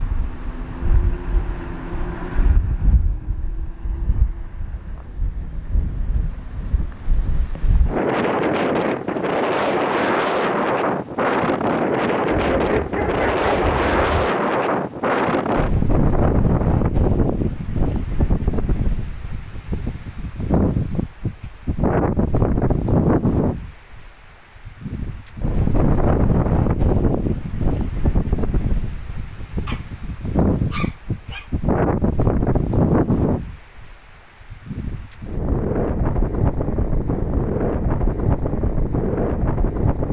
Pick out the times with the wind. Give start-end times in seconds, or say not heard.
0.0-40.0.